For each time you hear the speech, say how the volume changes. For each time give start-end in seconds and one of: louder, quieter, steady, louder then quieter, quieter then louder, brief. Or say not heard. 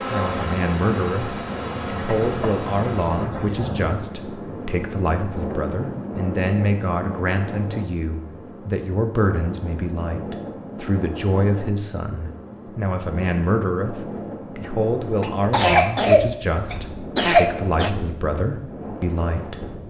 0.1-19.7 steady.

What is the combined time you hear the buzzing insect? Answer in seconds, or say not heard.
3 s.